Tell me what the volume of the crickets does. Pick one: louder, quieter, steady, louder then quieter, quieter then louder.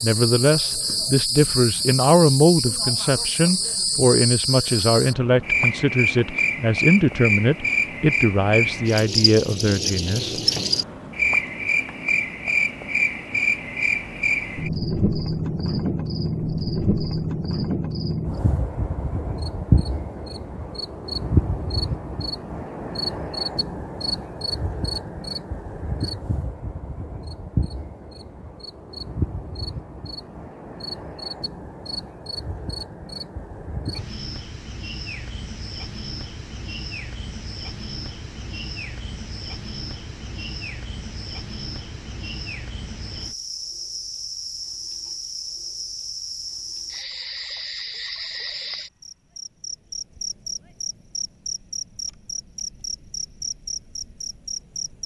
quieter.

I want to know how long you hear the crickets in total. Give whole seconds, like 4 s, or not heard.
55 s.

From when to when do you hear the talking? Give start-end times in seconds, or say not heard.
0.0-10.4.